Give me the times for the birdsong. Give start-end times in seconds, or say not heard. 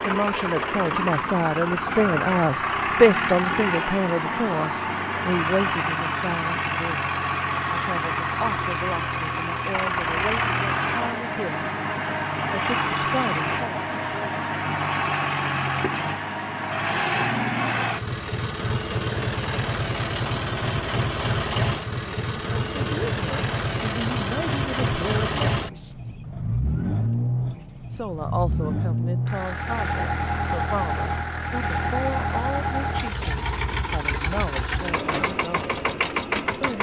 not heard.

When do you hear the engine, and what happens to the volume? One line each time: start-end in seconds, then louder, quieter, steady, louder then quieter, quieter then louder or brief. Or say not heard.
0.0-36.7 steady.